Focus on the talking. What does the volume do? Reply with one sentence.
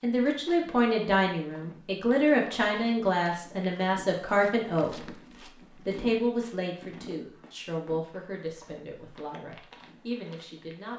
The loudness of the talking goes down.